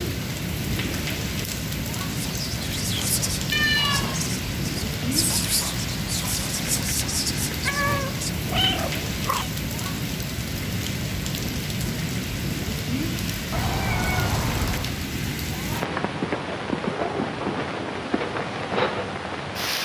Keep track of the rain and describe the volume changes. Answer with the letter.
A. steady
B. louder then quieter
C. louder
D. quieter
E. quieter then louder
A.